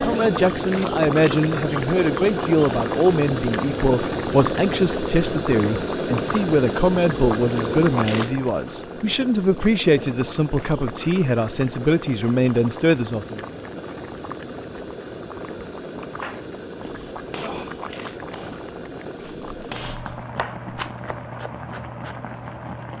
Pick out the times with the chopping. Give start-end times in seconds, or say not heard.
16.1-22.2.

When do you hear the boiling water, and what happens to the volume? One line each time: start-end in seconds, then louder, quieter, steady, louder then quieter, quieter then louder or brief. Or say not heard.
0.0-22.9 quieter.